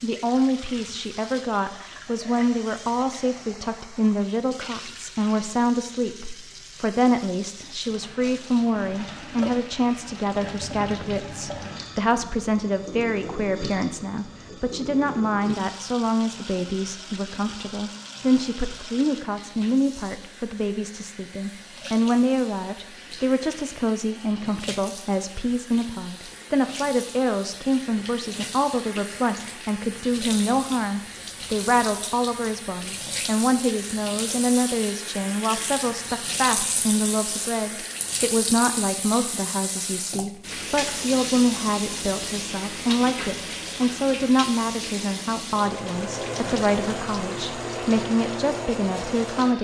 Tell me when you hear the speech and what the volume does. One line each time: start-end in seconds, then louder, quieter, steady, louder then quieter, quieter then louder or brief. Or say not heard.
0.0-49.5 steady.